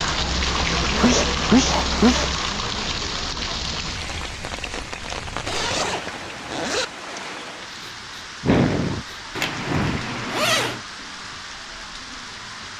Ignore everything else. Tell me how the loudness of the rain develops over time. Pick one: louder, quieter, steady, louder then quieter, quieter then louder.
quieter.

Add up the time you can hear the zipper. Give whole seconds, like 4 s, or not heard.
5 s.